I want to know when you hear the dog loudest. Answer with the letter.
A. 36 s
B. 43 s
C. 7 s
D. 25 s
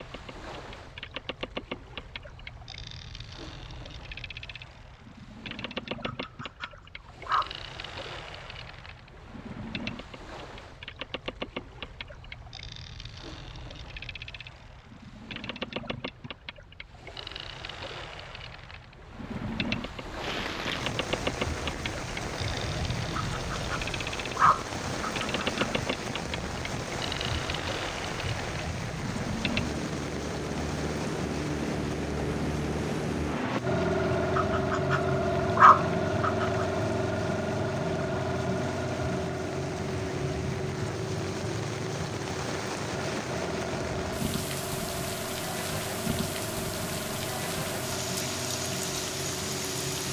A.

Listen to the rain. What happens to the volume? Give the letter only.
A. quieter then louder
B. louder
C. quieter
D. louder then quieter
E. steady
A.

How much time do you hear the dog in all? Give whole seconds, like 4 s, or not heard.
6 s.